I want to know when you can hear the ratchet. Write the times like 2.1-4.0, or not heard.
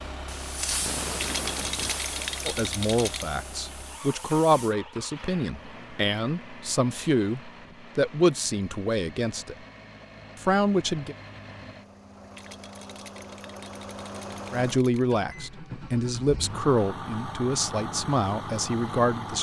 not heard.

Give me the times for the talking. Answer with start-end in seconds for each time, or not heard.
2.5-9.6, 10.3-11.2, 14.5-19.3.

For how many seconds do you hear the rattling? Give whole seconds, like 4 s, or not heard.
5 s.